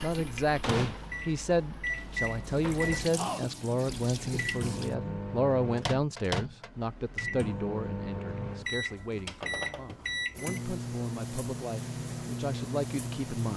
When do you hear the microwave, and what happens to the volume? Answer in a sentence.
The microwave can be heard from 0.0 to 13.5 s, at a steady volume.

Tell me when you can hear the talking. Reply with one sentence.
The talking can be heard from 0.0 to 13.5 s.